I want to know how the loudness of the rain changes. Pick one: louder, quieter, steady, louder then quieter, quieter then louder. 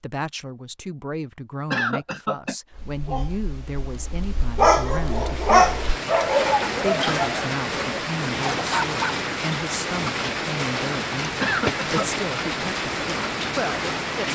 steady.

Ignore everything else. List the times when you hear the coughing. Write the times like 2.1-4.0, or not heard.
1.7-2.5, 11.4-12.1.